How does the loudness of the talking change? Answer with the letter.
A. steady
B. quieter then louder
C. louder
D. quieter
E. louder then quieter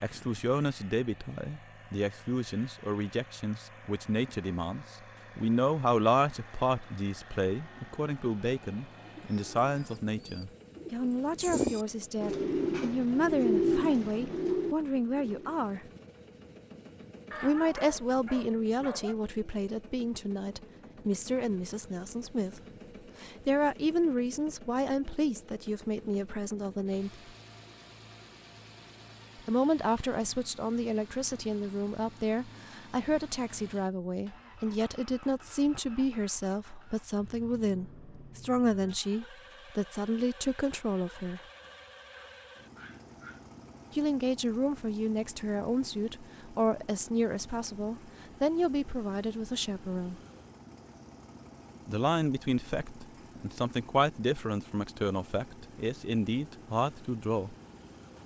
A.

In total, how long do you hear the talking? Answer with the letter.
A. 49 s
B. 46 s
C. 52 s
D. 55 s
A.